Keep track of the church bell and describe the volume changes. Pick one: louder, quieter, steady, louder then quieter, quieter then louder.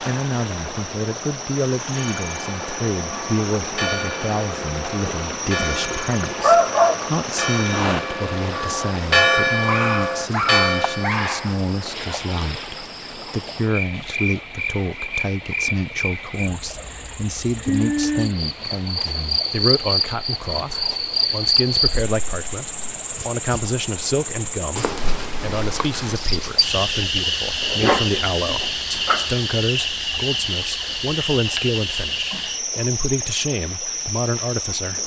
louder.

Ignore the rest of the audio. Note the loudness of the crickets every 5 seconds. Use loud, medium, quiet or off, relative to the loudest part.
medium, medium, medium, loud, loud, loud, loud.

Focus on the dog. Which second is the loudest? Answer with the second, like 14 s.
7 s.